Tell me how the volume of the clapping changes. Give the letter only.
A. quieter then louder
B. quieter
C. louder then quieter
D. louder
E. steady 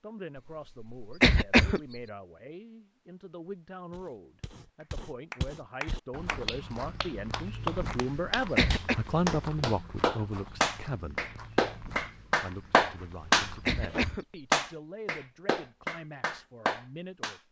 C.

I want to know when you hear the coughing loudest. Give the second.
1 s.